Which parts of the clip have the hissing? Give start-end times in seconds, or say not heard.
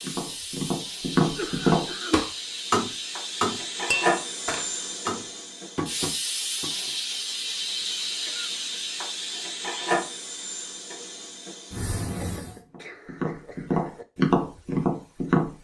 0.0-12.7.